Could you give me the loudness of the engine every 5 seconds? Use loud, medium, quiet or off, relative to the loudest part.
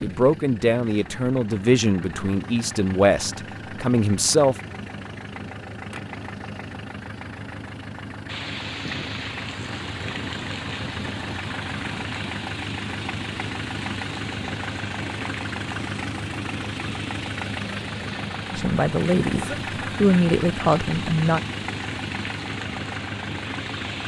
medium, medium, loud, loud, loud.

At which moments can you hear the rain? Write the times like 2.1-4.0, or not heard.
8.2-24.0.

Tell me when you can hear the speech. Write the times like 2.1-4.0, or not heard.
0.0-4.5, 18.5-21.4.